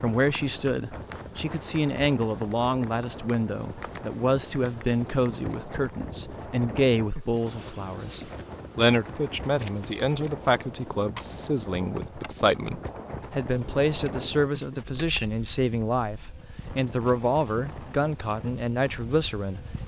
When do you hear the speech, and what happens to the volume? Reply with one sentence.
The speech can be heard from 0.0 to 19.6 s, at a steady volume.